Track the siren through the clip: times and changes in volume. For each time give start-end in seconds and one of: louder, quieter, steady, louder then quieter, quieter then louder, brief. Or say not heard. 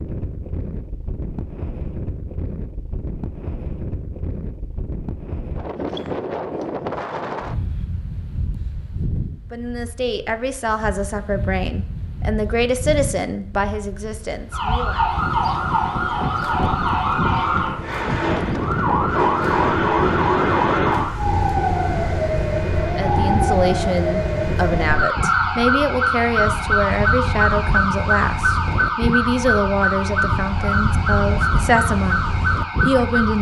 14.5-33.3 steady.